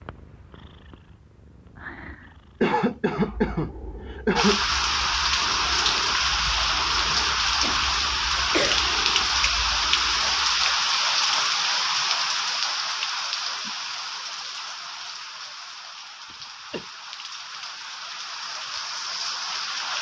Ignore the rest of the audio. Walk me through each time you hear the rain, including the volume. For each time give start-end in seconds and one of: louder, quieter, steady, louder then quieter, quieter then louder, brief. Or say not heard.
4.3-19.9 quieter.